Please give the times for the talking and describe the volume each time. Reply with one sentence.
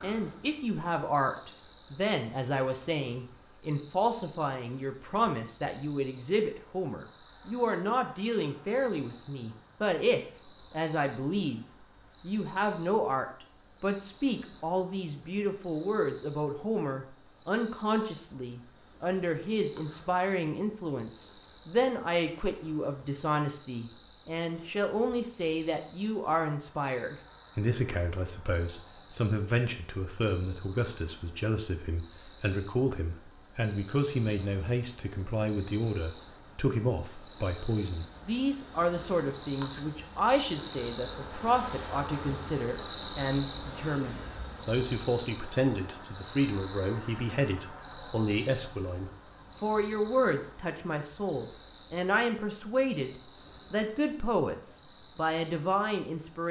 The talking can be heard from 0.0 to 56.4 s, at a steady volume.